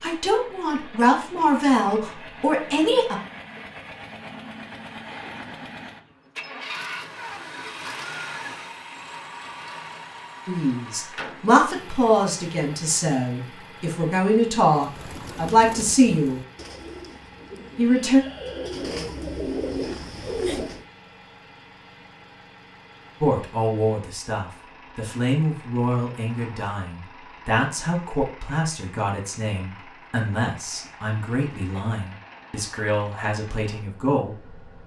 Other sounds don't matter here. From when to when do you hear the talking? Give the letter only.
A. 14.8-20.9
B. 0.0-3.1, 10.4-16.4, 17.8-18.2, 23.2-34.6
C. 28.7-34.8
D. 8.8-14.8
B.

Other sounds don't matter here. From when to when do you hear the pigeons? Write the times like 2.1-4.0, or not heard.
14.8-20.9.